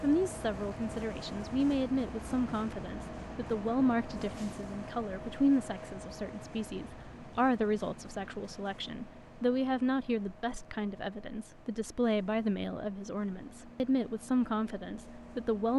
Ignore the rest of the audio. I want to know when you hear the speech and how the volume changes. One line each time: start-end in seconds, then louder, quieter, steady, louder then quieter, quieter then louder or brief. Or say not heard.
0.0-15.7 steady.